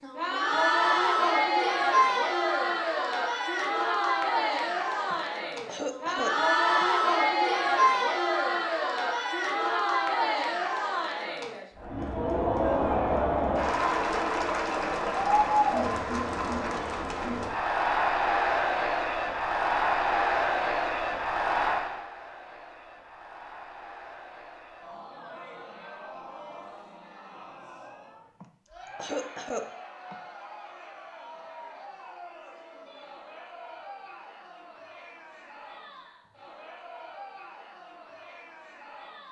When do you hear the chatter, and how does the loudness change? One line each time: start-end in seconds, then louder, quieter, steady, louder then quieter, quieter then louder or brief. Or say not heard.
0.0-39.2 quieter.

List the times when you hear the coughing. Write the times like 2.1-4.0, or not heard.
5.1-6.8, 28.4-30.1.